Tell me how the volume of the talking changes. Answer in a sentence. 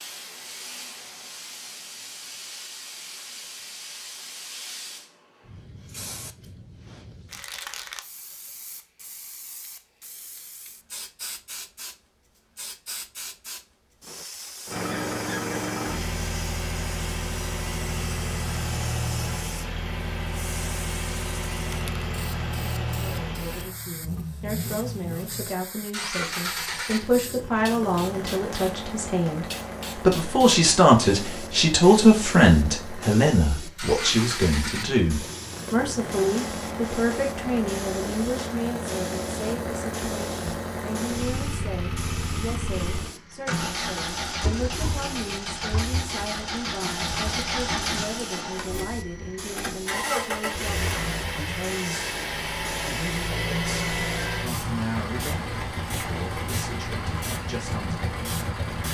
The loudness of the talking goes up, then down.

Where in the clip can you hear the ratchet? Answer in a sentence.
You can't hear the ratchet here.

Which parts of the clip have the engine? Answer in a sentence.
The engine can be heard from 14.7 to 58.8 s.